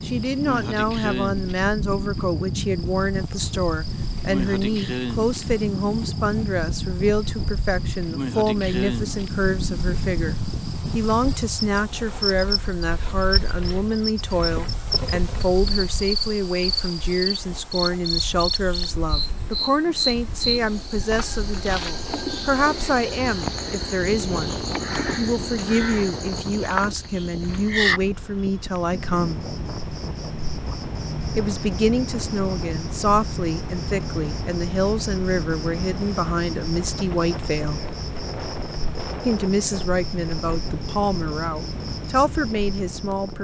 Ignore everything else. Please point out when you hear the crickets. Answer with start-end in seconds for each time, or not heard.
0.0-43.3.